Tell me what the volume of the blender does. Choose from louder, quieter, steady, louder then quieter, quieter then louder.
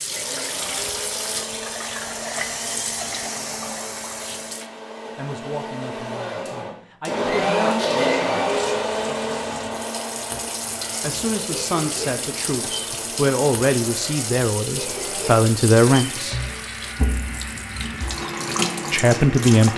louder then quieter.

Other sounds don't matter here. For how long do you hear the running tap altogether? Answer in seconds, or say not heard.
16 s.